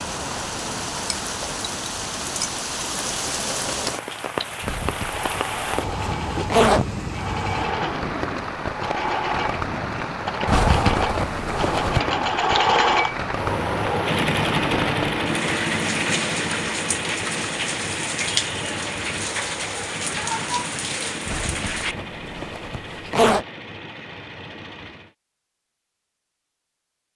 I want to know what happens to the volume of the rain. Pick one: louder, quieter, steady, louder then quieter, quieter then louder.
steady.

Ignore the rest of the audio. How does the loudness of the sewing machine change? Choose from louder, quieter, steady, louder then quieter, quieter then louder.
louder then quieter.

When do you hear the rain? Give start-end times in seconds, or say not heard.
0.0-21.9.